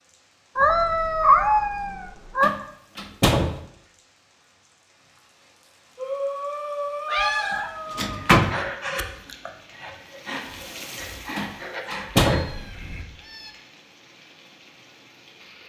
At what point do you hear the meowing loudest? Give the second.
1 s.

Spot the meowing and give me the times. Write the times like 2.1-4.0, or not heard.
0.6-2.5, 7.0-8.2, 12.3-13.6.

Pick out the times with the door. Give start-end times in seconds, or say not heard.
2.4-3.6, 7.2-8.6, 11.3-12.7.